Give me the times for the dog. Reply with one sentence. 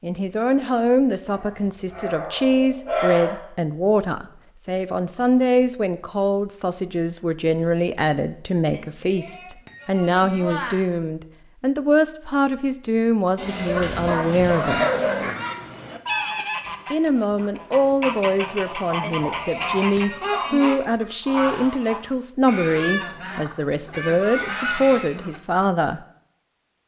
The dog can be heard from 1.3 to 3.4 s, from 13.3 to 15.3 s and from 18.9 to 20.5 s.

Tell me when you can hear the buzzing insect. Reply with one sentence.
The buzzing insect can't be heard in this clip.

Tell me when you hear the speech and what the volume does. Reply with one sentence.
You can hear the speech from 0.0 to 14.8 s, at a steady volume; and from 16.9 to 26.0 s, at a steady volume.